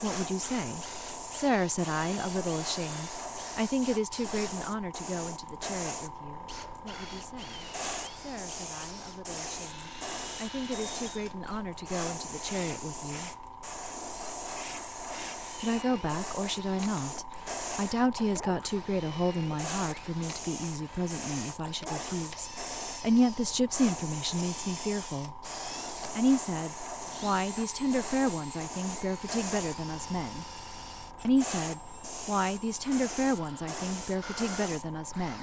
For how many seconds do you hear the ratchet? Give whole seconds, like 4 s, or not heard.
not heard.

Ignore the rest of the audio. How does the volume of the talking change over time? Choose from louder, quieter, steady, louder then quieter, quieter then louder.
quieter then louder.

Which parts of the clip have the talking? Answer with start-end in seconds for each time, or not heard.
0.0-13.3, 15.6-25.4, 26.1-30.4, 31.2-35.3.